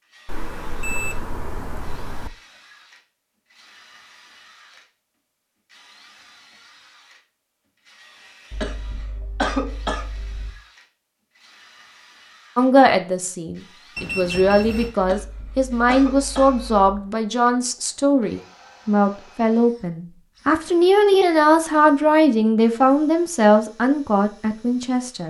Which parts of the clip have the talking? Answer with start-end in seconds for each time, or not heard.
12.6-25.2.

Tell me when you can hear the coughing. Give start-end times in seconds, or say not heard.
8.5-10.5, 15.0-16.9.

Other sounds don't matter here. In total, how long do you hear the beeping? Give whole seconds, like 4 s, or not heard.
3 s.